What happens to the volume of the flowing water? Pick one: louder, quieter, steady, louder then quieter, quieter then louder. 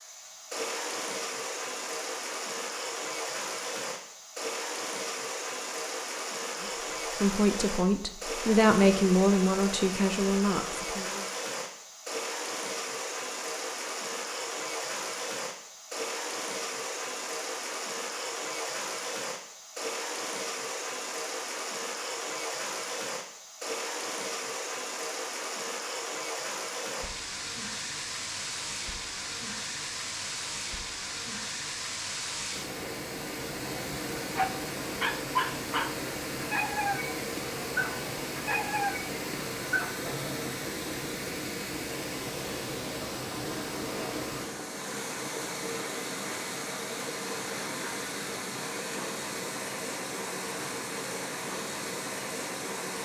steady.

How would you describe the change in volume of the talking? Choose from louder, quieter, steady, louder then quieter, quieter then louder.
louder then quieter.